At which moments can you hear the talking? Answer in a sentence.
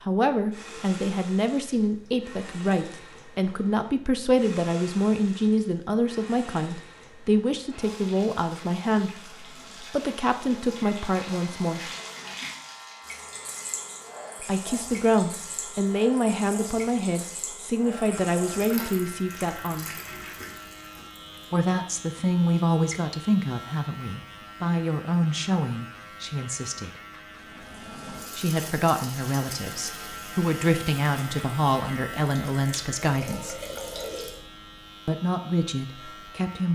The talking can be heard from 0.0 to 11.9 s, from 14.4 to 19.9 s, from 21.5 to 26.9 s, from 28.4 to 33.5 s and from 35.0 to 36.6 s.